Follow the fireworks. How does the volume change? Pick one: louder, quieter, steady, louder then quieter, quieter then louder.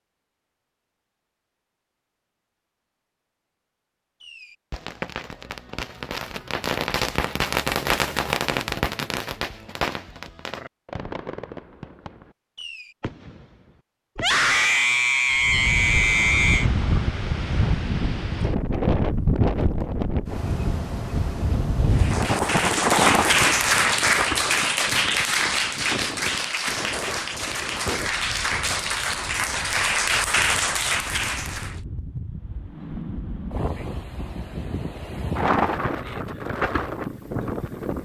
louder then quieter.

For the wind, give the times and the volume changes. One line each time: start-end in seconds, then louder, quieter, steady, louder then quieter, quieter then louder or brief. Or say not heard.
15.3-38.0 quieter then louder.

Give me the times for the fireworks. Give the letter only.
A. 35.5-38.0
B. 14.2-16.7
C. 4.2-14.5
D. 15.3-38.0
C.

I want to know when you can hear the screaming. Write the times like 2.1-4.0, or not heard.
14.2-16.7.